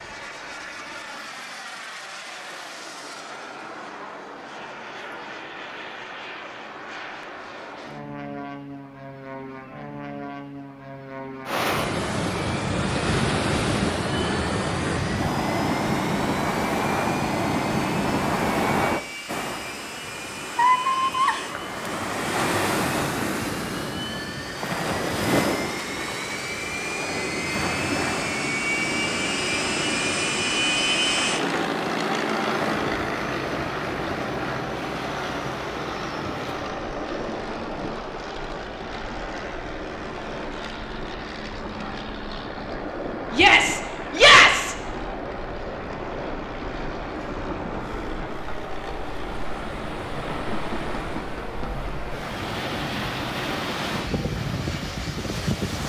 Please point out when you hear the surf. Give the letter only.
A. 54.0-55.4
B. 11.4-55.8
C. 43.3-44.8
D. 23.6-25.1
B.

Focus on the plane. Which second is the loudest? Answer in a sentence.
The volume of the plane peaks at 31 seconds.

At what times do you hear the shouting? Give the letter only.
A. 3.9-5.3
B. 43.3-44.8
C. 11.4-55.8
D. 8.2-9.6
B.